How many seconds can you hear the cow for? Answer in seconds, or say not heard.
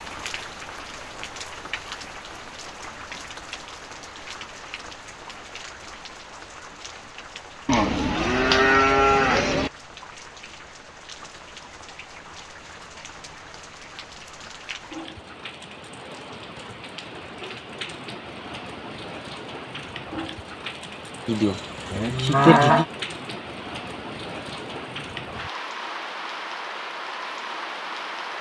4 s.